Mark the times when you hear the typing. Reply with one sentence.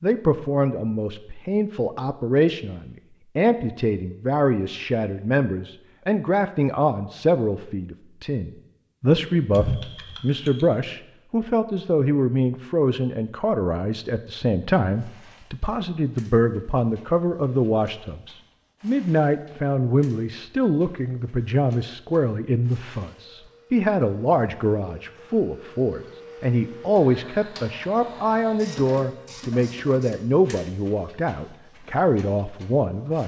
The typing can be heard from 9.5 to 10.7 s.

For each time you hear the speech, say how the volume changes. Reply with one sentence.
The speech can be heard from 0.0 to 33.2 s, at a steady volume.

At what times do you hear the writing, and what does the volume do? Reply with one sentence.
You can't hear the writing here.